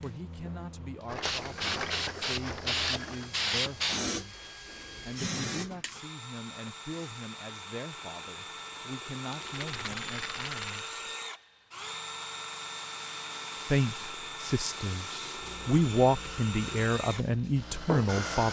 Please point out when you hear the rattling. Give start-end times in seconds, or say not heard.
1.1-3.3, 9.3-10.8.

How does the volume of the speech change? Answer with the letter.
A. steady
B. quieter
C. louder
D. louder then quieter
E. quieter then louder
C.